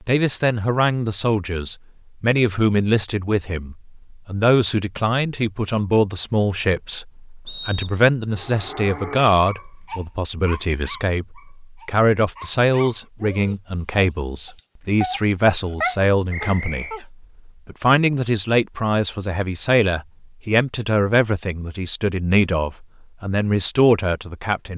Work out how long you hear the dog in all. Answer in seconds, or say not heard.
9 s.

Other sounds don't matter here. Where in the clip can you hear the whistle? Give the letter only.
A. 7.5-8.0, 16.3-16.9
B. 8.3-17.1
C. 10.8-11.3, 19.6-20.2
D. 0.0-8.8
A.